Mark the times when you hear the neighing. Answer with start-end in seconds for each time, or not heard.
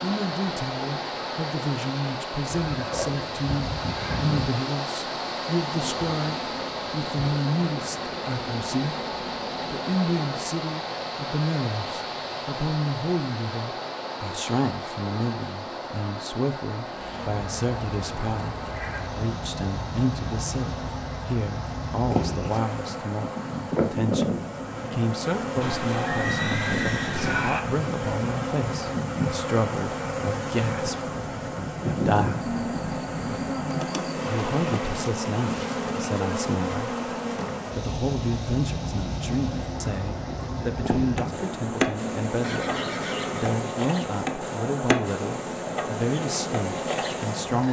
2.5-4.5, 25.6-27.6, 42.4-43.5.